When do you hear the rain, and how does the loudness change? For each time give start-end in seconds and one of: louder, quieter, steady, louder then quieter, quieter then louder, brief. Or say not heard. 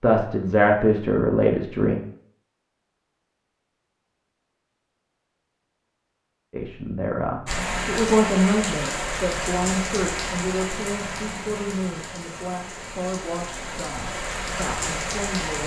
7.5-15.6 quieter then louder.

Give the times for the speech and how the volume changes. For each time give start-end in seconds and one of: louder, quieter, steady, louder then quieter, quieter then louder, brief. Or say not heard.
0.0-1.9 brief
6.5-15.6 quieter.